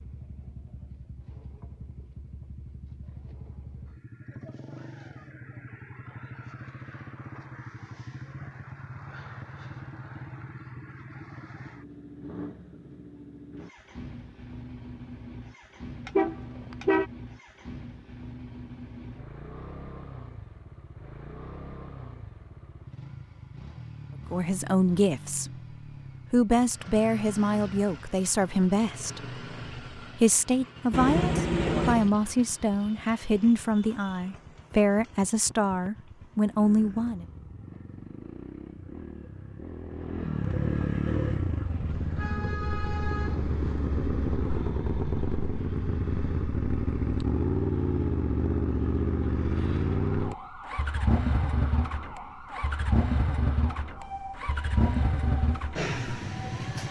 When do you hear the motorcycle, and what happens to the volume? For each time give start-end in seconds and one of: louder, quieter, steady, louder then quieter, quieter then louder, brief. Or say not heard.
0.0-56.8 louder.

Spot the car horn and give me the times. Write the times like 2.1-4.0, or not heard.
16.1-17.1, 30.9-32.1, 41.9-43.9.